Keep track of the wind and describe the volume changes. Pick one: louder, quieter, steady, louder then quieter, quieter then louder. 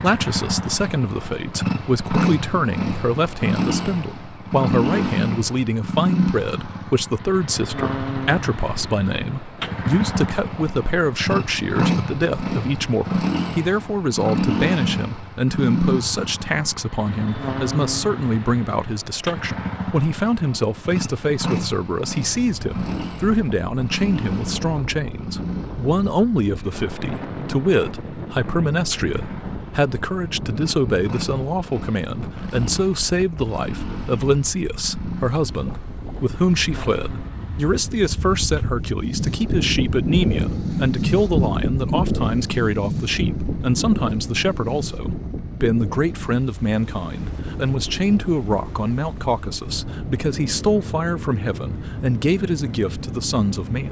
louder then quieter.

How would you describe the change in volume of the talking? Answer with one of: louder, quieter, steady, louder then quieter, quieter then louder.
steady.